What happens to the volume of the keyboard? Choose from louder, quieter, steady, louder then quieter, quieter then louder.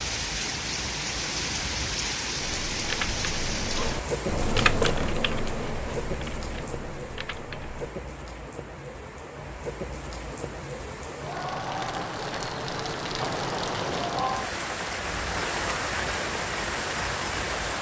louder then quieter.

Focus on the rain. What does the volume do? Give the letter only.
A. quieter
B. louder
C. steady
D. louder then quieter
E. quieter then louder
E.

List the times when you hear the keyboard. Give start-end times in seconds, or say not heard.
2.4-7.9.